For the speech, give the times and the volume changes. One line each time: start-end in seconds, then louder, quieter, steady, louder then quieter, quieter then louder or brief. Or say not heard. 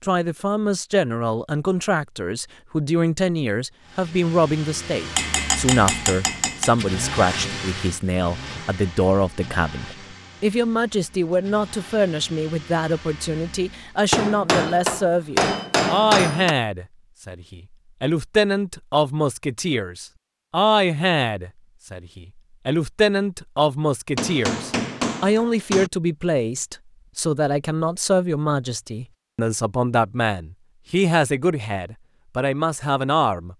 0.0-33.5 steady.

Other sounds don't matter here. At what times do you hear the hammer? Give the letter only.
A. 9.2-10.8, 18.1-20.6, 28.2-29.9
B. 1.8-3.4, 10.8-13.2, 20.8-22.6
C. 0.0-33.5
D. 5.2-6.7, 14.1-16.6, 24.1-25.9
D.